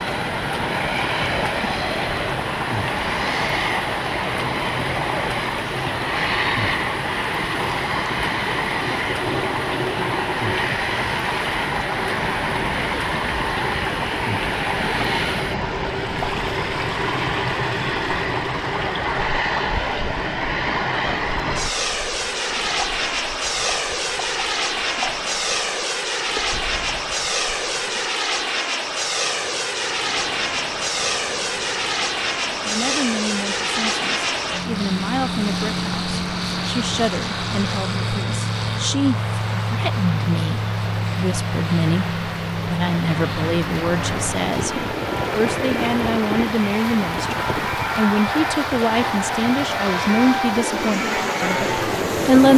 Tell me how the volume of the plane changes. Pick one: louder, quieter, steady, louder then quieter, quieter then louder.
steady.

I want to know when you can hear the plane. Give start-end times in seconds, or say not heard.
0.0-52.5.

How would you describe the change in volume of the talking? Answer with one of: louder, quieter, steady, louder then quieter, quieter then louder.
louder.